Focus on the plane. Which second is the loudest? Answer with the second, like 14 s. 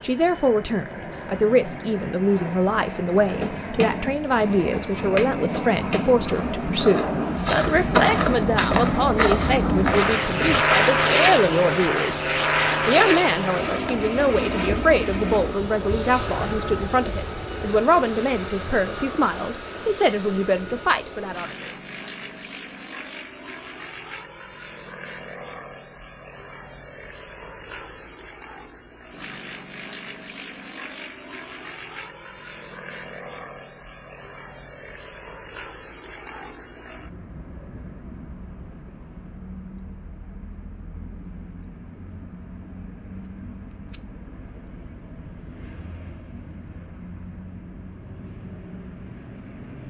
11 s.